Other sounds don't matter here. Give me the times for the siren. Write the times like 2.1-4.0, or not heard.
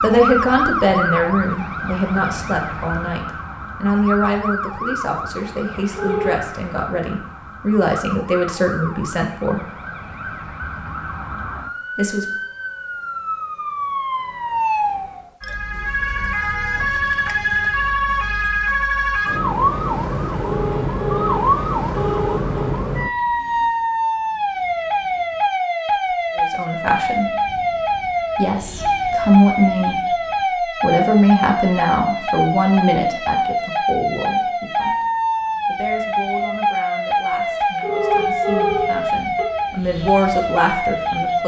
0.0-41.4.